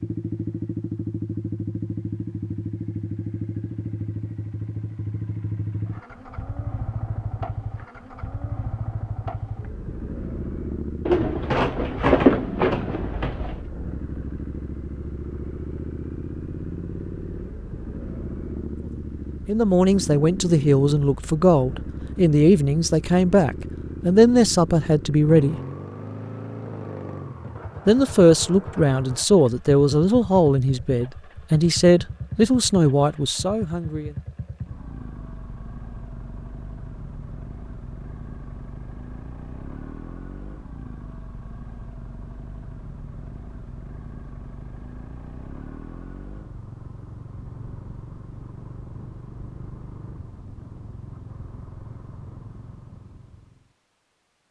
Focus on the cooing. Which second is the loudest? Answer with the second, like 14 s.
12 s.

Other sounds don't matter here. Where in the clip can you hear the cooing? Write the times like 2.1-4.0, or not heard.
11.1-13.6.